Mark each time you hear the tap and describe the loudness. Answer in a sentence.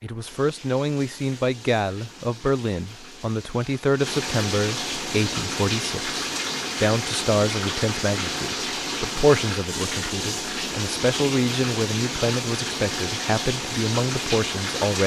You can hear the tap from 0.0 to 15.0 s, getting louder.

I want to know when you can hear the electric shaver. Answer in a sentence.
You can't hear the electric shaver here.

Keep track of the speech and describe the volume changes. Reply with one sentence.
The volume of the speech stays about the same.